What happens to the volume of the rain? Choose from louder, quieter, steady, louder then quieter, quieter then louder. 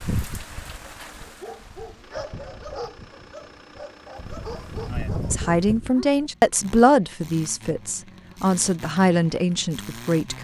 quieter then louder.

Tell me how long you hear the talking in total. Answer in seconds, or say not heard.
5 s.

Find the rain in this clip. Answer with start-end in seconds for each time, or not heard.
0.0-5.9.